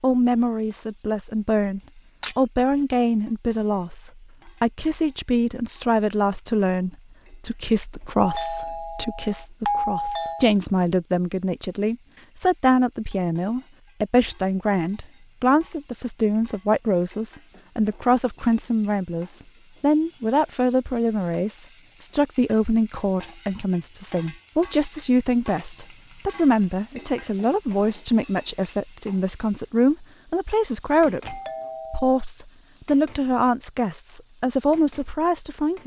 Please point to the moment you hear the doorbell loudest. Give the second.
10 s.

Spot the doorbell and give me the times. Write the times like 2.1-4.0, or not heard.
8.2-10.5, 31.2-32.1.